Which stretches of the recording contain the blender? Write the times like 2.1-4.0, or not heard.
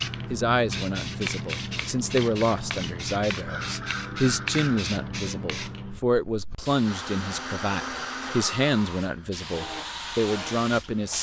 6.8-11.1.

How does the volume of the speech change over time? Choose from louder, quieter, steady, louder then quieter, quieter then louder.
steady.